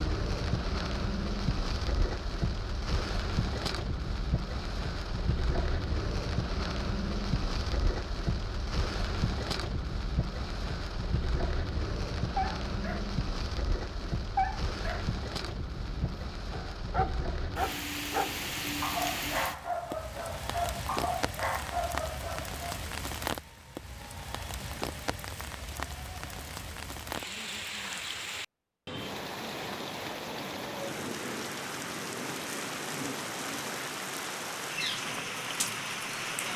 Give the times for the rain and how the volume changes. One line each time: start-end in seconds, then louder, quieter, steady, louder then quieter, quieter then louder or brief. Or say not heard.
0.0-36.5 steady.